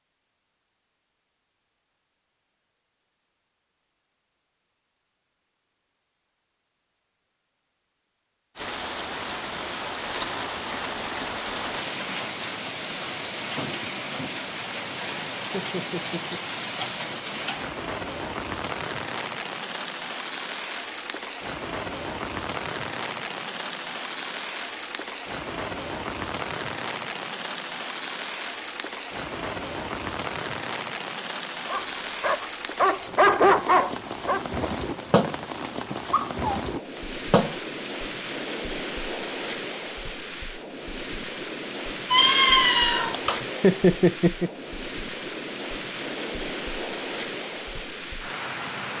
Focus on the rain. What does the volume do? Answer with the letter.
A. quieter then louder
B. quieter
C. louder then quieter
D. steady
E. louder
D.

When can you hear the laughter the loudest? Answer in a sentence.
The loudest moment of the laughter is at 44 seconds.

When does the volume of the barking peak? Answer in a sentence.
The loudest moment of the barking is at 33 seconds.